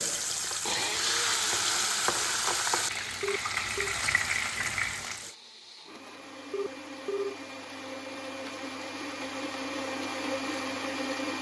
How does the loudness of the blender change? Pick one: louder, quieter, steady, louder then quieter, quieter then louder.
quieter then louder.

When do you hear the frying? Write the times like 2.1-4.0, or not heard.
0.0-5.3.